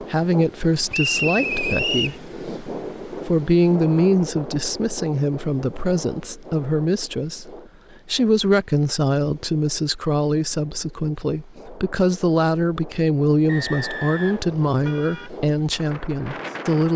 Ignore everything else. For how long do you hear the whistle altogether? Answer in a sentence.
The whistle can be heard for 2 seconds in total.